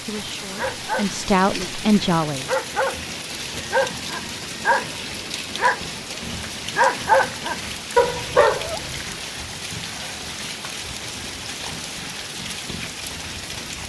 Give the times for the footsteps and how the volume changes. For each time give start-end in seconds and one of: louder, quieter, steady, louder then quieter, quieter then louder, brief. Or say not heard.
not heard.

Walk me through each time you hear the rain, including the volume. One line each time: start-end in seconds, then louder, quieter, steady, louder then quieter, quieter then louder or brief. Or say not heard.
0.0-13.8 steady.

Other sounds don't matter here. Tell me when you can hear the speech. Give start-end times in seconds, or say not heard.
0.0-2.5.